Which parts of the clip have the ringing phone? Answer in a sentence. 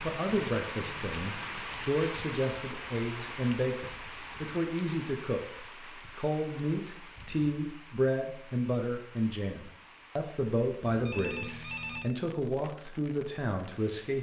You can hear the ringing phone from 10.8 to 12.1 s.